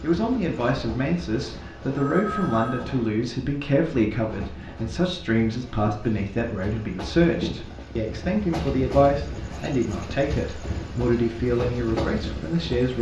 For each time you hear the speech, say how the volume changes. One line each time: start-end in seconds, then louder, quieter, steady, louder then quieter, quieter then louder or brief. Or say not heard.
0.0-12.9 steady.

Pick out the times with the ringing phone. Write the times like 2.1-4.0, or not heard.
1.9-2.9.